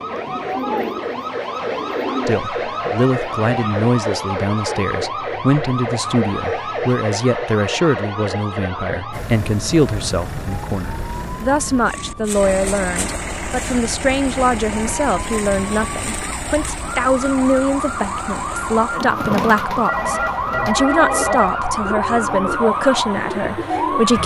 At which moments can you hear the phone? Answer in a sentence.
You can hear the phone from 19.9 to 21.6 s.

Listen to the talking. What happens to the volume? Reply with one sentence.
The loudness of the talking stays about the same.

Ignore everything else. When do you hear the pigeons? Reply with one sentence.
You can hear the pigeons from 0.0 to 2.5 s and from 18.9 to 24.0 s.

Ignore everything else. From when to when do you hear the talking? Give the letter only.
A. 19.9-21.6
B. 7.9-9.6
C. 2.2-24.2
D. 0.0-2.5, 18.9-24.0
C.